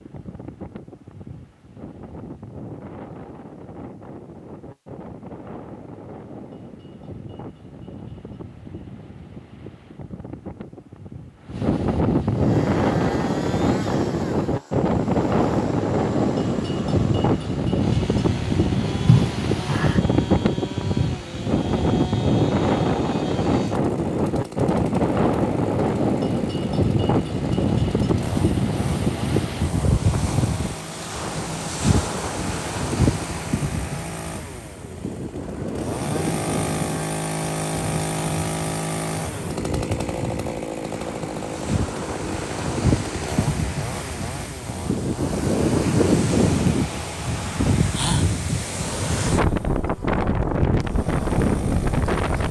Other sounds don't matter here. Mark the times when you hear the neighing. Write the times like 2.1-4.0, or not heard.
19.1-20.0.